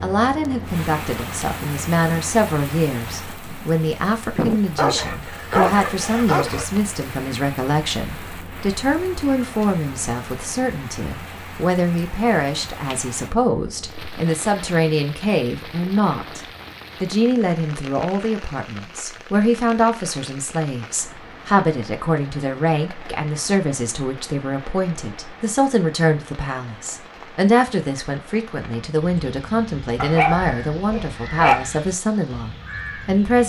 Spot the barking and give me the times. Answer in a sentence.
The barking can be heard from 4.8 to 6.7 s and from 29.9 to 31.6 s.